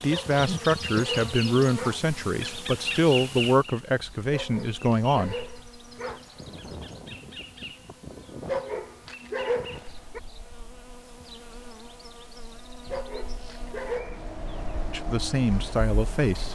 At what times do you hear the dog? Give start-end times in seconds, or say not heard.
0.1-1.9, 4.3-6.2, 8.4-10.2, 12.9-14.3.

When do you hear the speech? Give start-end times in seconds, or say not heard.
0.0-5.3, 14.9-16.4.